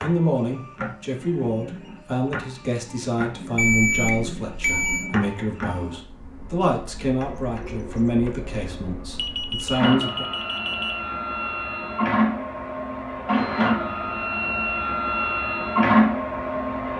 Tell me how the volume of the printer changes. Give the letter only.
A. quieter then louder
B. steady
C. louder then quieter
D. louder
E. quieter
D.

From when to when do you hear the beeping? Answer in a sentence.
You can hear the beeping from 3.5 to 5.1 s and from 9.2 to 10.9 s.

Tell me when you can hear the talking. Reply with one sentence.
You can hear the talking from 0.0 to 10.2 s.